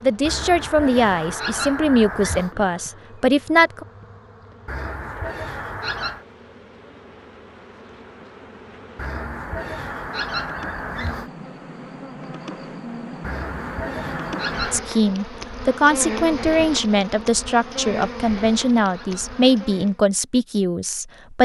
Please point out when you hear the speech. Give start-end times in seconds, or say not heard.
0.0-3.9, 14.7-21.4.